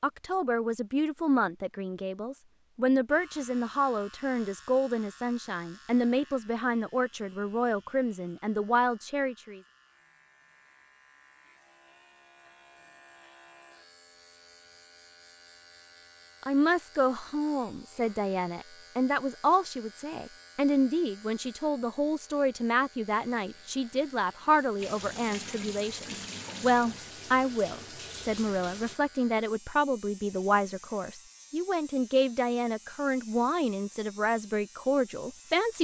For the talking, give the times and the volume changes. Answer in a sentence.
The talking can be heard from 0.0 to 9.6 s, at a steady volume; and from 16.4 to 35.7 s, at a steady volume.